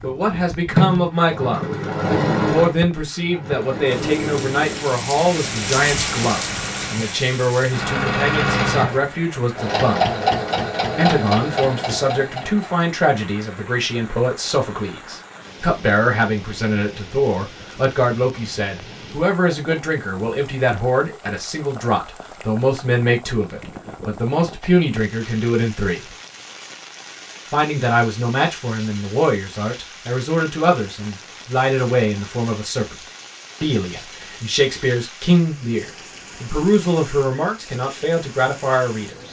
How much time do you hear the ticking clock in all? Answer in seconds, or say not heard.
not heard.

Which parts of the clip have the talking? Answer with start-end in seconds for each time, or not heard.
0.0-1.6, 2.5-10.1, 10.9-26.1, 27.4-39.2.